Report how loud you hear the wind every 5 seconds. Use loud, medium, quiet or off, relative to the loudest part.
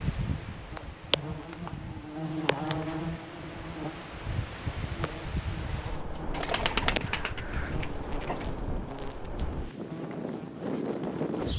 medium, medium, loud.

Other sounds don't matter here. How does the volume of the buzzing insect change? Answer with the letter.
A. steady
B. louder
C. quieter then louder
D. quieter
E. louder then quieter
D.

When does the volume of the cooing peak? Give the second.
7 s.